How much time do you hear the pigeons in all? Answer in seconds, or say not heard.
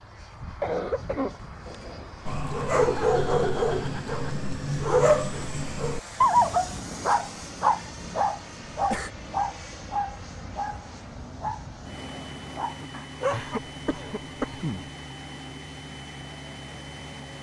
not heard.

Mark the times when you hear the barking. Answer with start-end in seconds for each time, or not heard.
2.2-13.6.